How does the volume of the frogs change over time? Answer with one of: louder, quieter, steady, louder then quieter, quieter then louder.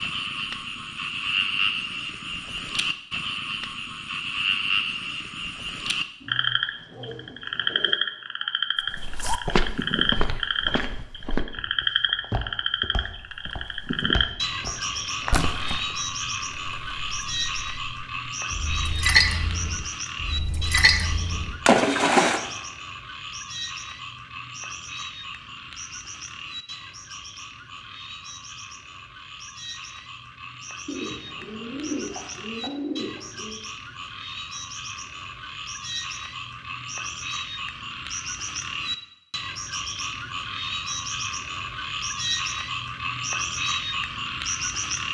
quieter then louder.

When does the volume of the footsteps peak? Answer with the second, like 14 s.
9 s.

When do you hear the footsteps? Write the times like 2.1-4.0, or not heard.
8.9-15.5.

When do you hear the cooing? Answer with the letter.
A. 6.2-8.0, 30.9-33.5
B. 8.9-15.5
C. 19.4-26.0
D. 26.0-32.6
A.